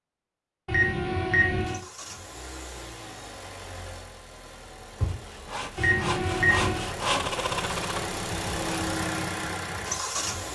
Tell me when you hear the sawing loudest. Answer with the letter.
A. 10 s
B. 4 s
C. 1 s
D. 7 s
D.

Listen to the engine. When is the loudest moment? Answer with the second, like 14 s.
9 s.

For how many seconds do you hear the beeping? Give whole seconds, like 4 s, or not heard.
2 s.